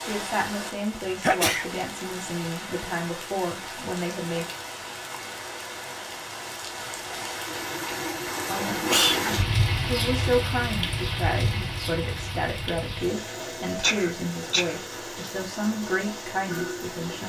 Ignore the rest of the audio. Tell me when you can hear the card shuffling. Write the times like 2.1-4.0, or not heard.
not heard.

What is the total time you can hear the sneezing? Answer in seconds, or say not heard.
2 s.